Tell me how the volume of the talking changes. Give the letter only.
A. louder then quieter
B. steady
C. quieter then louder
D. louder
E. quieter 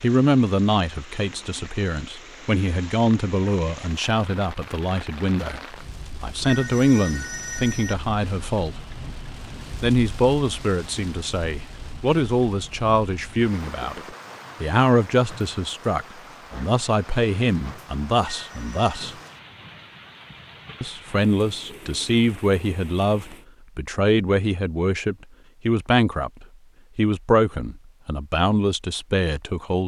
B.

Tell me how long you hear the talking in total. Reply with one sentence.
The talking can be heard for 27 seconds in total.